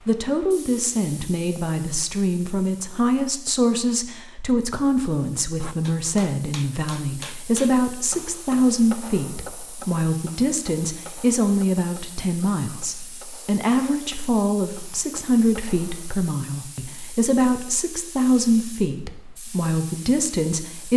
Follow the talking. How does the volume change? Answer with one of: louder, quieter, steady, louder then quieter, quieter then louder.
steady.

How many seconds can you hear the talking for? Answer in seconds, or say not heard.
21 s.